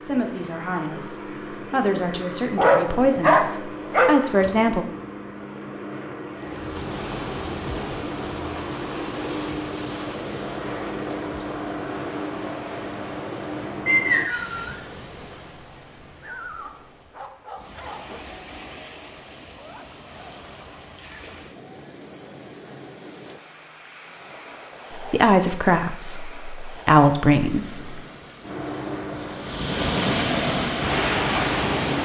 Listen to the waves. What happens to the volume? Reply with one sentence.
The loudness of the waves goes down, then up.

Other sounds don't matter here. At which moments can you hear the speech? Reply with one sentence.
You can hear the speech from 0.0 to 4.8 s and from 24.9 to 27.9 s.